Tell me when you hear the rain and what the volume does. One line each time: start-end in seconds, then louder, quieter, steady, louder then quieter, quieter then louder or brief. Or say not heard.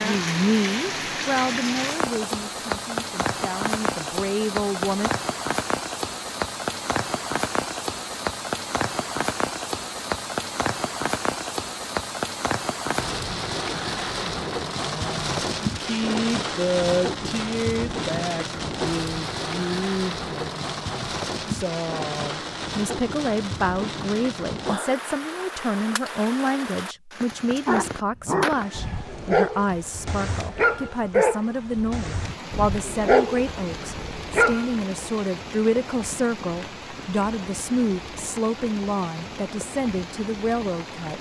0.0-41.1 quieter.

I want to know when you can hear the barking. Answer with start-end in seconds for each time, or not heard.
27.6-34.7.